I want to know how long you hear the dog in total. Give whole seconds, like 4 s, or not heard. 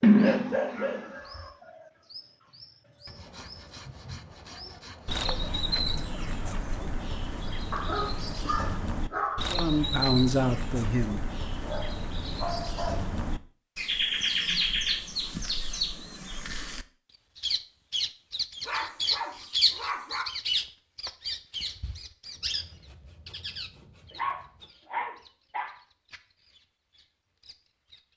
8 s.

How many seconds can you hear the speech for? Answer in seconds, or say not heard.
2 s.